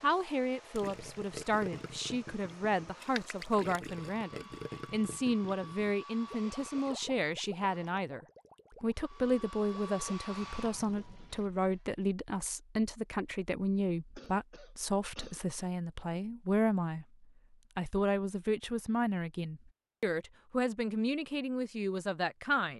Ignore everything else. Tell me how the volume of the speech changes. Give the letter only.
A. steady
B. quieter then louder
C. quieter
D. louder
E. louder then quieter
A.